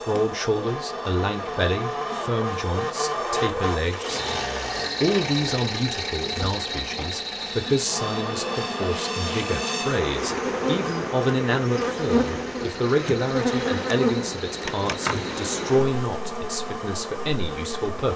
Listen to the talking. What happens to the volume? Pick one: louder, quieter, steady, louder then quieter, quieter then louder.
steady.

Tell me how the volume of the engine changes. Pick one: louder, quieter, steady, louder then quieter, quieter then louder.
quieter.